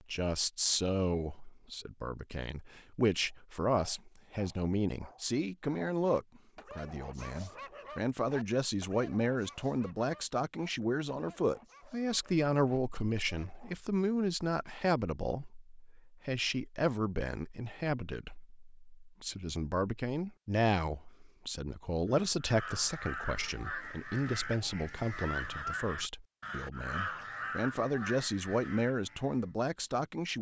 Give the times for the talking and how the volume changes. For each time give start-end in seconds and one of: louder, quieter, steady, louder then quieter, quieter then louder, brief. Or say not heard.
0.1-30.3 steady.